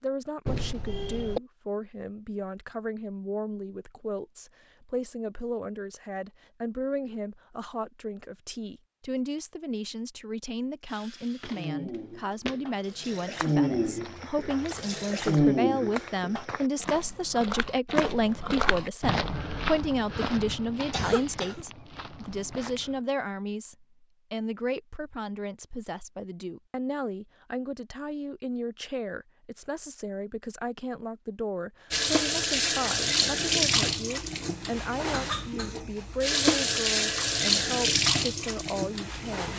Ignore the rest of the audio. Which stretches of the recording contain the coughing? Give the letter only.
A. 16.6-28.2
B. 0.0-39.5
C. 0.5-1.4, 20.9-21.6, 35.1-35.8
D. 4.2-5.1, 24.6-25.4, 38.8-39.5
C.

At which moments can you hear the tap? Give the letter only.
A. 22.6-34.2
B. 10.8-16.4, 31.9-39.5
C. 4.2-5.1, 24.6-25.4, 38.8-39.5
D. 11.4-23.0
B.